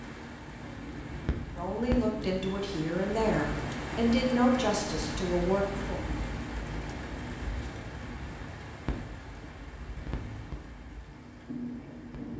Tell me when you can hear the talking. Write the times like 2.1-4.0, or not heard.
1.6-6.0.